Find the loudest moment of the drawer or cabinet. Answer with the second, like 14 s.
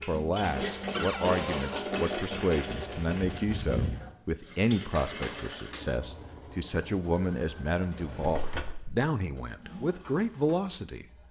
1 s.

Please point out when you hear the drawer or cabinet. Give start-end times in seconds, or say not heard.
0.9-1.9, 7.9-9.0.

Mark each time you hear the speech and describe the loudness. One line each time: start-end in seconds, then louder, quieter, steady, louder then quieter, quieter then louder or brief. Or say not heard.
0.1-11.1 steady.